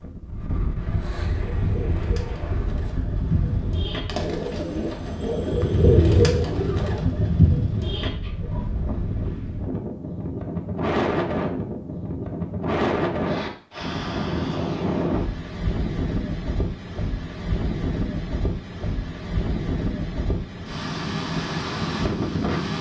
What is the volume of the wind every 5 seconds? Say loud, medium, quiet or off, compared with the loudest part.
medium, medium, loud, loud, loud.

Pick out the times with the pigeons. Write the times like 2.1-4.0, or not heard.
1.3-8.7.